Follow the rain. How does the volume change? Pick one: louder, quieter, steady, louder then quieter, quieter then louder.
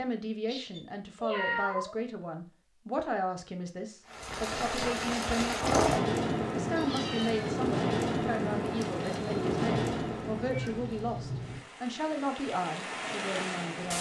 quieter.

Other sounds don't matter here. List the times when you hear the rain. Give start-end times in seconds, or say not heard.
4.0-13.9.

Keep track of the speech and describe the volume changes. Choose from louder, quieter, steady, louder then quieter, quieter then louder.
steady.